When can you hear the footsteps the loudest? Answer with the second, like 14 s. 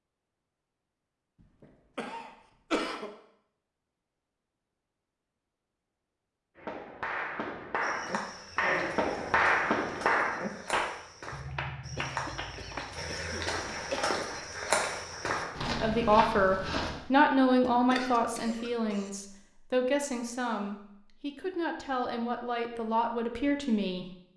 15 s.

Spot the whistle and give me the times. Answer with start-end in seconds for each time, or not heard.
not heard.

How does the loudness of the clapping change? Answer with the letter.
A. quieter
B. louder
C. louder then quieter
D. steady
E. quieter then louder
C.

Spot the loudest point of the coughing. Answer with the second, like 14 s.
3 s.